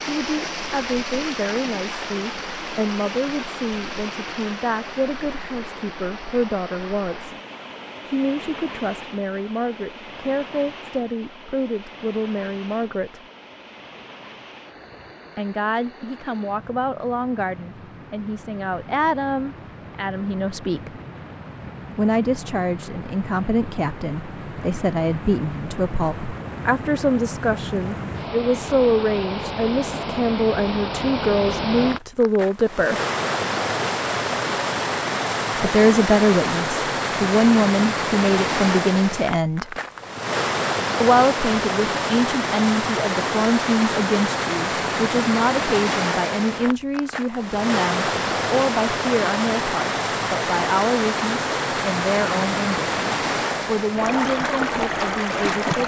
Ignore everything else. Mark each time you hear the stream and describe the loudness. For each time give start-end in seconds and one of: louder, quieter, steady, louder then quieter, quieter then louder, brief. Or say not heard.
0.0-55.8 quieter then louder.